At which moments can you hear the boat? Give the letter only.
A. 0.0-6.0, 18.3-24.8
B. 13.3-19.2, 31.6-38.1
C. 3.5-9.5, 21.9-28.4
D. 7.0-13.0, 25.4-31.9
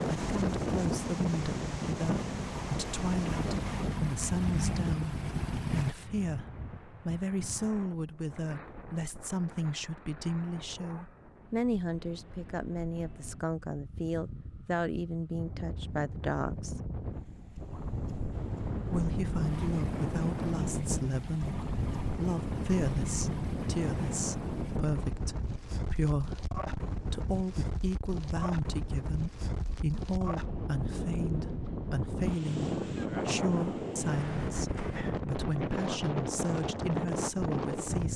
A.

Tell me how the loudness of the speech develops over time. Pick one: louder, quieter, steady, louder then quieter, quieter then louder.
steady.